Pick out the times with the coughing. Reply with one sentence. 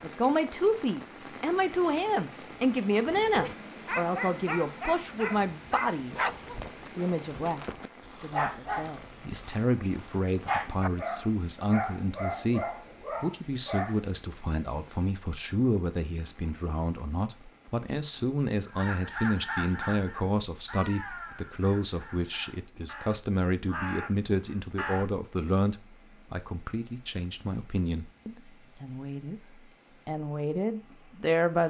The coughing can't be heard in this clip.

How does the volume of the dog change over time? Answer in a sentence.
The loudness of the dog stays about the same.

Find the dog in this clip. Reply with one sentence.
The dog can be heard from 3.0 to 14.0 s.